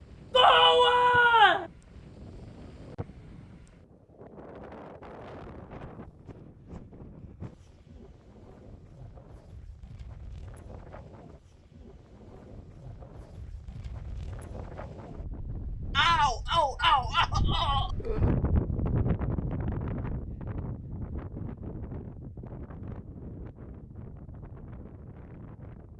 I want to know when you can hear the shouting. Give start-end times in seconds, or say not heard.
0.3-1.7, 15.9-17.9.